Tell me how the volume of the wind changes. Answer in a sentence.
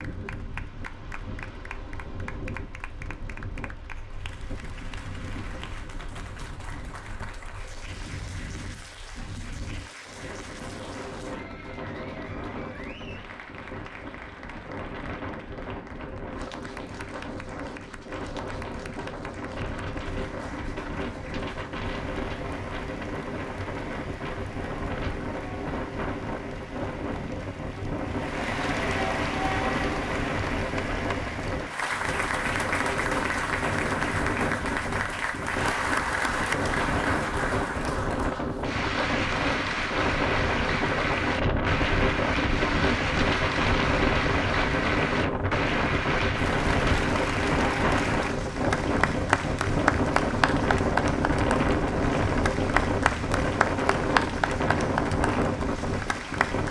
The volume of the wind goes up.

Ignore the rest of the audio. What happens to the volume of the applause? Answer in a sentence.
The volume of the applause goes up.